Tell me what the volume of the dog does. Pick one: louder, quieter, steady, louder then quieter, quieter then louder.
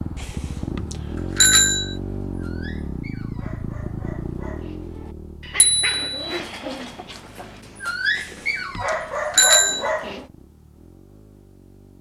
louder.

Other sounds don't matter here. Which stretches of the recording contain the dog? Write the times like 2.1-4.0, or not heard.
1.1-10.2.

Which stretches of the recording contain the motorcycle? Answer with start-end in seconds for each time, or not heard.
0.0-11.9.